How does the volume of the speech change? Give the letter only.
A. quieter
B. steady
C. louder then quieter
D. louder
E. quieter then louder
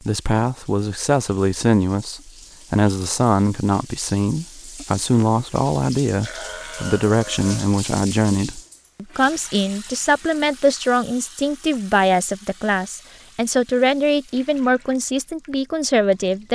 B.